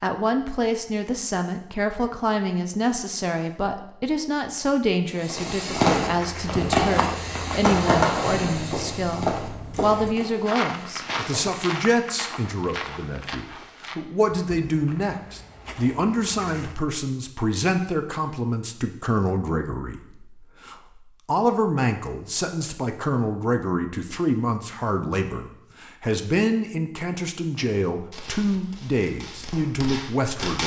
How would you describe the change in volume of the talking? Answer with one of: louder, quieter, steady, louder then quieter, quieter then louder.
steady.